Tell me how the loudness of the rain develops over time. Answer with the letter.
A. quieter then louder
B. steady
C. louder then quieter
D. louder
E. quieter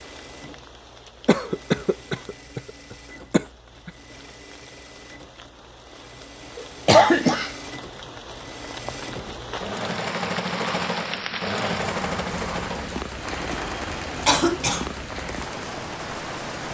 D.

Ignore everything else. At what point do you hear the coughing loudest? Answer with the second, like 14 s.
7 s.